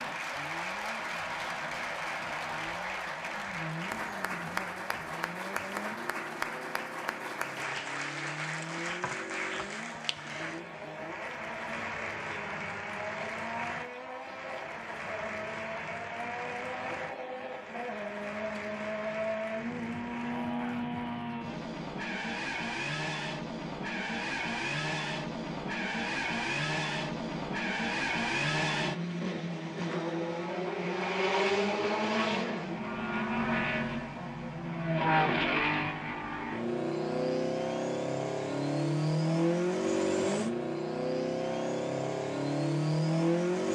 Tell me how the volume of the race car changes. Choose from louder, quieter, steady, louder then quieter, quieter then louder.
louder.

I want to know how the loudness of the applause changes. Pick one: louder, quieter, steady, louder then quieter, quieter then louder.
quieter.